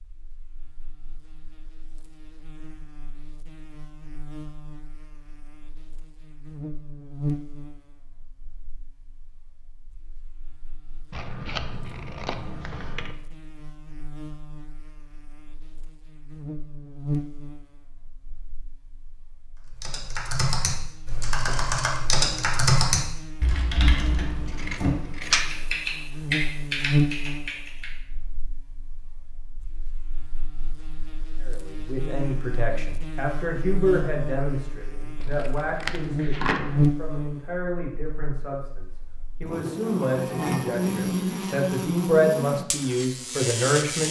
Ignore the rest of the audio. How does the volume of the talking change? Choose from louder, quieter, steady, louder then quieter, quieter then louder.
quieter then louder.